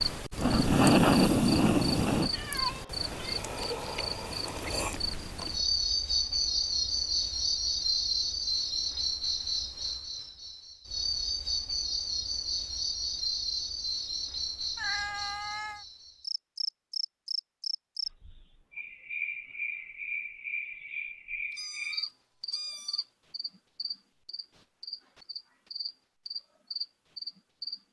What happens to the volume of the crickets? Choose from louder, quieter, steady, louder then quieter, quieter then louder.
quieter.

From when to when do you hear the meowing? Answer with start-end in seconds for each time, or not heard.
2.3-3.4, 14.8-15.8, 21.5-23.1.